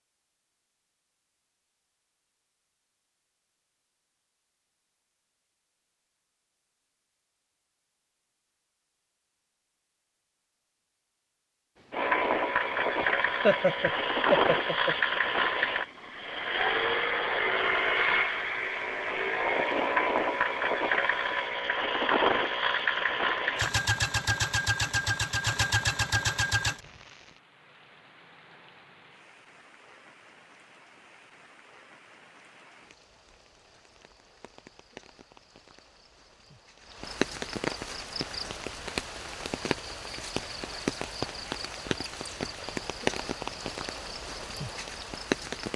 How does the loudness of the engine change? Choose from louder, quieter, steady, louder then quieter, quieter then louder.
steady.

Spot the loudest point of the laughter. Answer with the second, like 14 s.
14 s.